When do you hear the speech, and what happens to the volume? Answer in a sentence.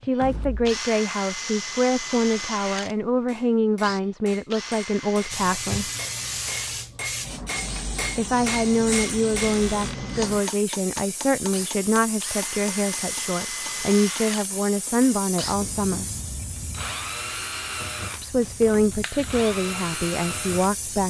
You can hear the speech from 0.0 to 5.9 s, at a steady volume; from 8.2 to 16.1 s, at a steady volume; and briefly from 18.2 to 21.0 s.